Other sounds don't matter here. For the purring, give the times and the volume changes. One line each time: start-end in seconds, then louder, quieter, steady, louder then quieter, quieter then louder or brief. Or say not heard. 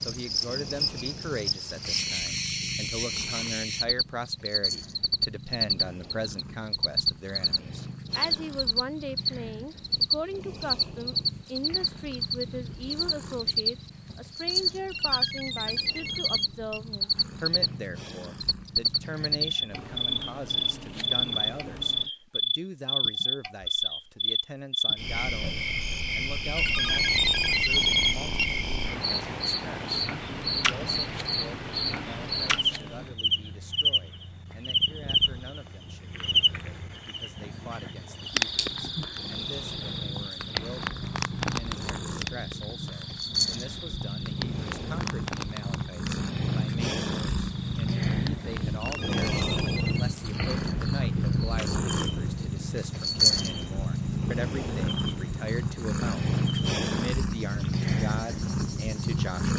0.0-22.1 steady
26.8-59.5 louder.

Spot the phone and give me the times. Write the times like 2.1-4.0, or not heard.
14.9-16.8, 26.6-28.5, 48.8-50.0.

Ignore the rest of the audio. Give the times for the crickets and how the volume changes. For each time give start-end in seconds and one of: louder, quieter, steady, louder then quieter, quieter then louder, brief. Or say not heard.
0.0-59.2 quieter.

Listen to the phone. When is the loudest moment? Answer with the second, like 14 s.
28 s.